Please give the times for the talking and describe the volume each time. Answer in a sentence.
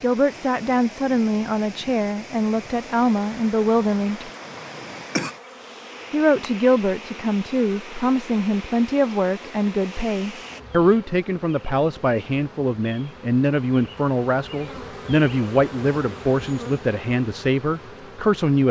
You can hear the talking from 0.0 to 4.3 s, at a steady volume; and from 6.1 to 18.6 s, at a steady volume.